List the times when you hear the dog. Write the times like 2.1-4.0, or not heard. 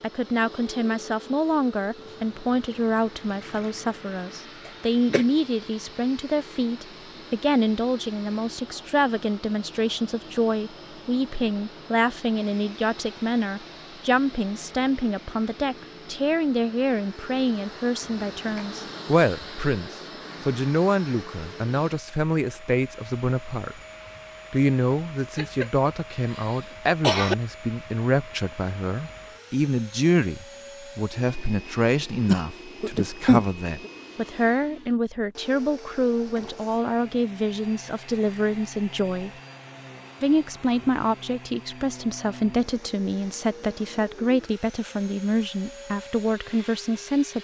not heard.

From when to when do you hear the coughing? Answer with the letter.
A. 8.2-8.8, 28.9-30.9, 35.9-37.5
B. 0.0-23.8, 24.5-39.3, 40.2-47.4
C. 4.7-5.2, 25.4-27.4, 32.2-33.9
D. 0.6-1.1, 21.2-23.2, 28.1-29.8
C.